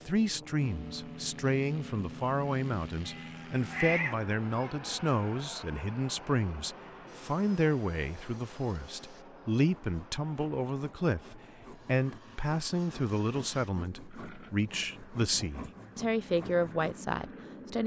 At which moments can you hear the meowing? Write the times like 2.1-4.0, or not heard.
3.0-4.7.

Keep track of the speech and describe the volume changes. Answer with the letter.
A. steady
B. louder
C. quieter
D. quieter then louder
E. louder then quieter
A.